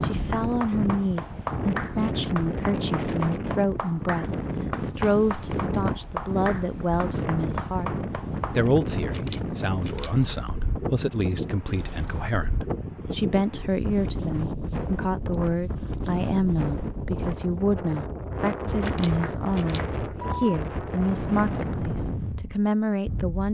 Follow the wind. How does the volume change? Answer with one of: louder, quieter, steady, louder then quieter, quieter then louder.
steady.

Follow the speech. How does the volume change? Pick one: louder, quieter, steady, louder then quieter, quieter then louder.
steady.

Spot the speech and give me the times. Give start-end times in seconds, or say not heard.
0.0-8.0, 8.6-23.4.